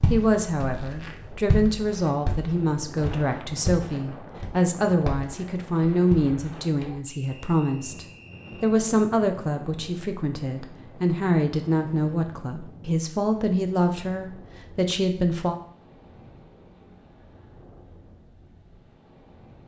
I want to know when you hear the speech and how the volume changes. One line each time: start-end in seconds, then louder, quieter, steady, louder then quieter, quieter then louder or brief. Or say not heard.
0.1-15.6 steady.